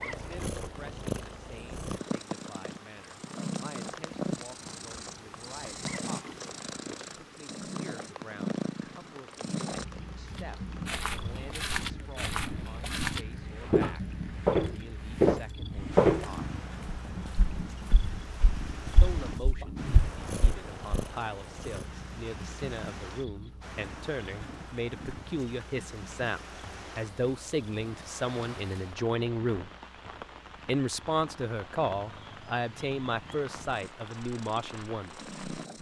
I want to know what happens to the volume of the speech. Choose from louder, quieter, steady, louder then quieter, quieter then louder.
louder.